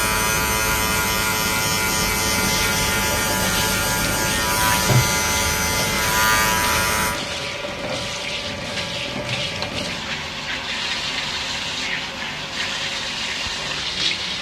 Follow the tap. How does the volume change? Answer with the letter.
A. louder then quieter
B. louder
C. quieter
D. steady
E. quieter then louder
D.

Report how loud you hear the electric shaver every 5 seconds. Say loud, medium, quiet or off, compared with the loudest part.
loud, loud, quiet.